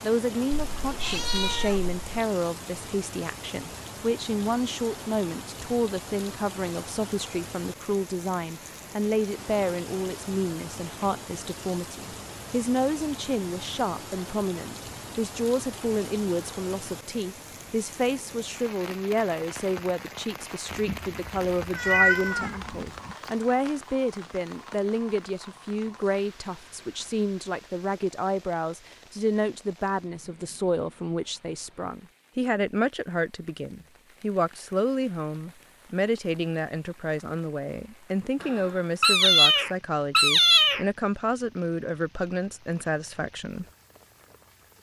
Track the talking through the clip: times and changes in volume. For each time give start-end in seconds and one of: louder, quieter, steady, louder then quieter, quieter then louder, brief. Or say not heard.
0.0-43.6 steady.